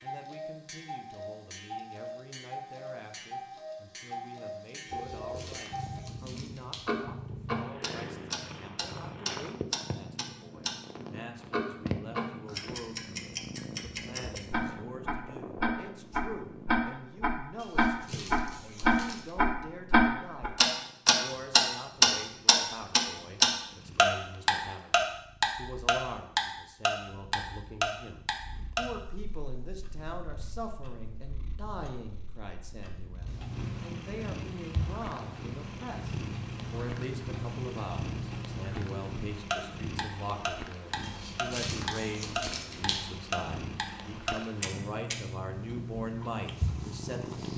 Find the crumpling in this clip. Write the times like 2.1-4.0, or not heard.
4.8-6.9, 17.6-19.4, 41.0-43.0.